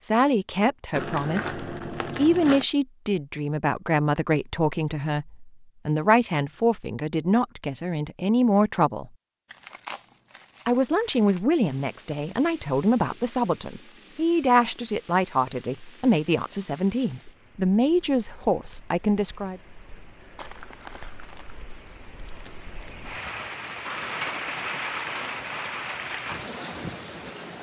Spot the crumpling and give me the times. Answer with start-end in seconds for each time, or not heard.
0.9-2.6, 9.4-11.4, 20.4-21.6.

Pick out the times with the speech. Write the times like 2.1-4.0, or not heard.
0.0-9.1, 10.7-19.6.